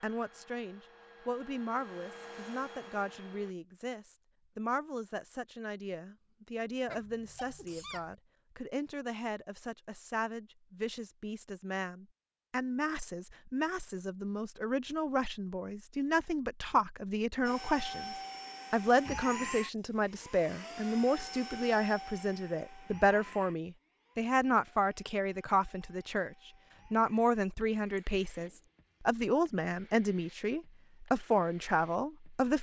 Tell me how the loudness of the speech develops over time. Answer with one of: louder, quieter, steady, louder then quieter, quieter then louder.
louder.